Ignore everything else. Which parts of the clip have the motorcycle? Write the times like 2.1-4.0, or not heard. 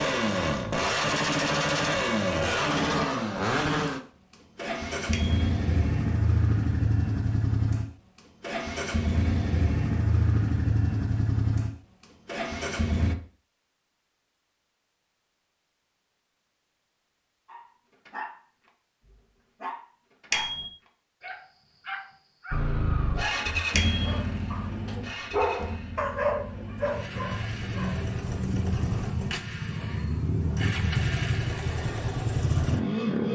0.0-13.2, 22.5-33.2.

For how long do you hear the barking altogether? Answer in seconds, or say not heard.
10 s.